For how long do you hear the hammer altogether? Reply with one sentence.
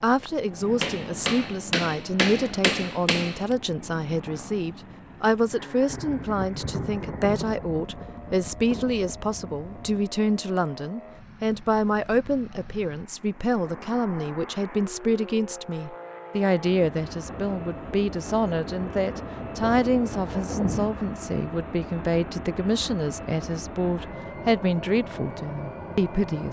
The hammer can be heard for 3 seconds in total.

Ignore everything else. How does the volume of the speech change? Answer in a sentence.
The loudness of the speech stays about the same.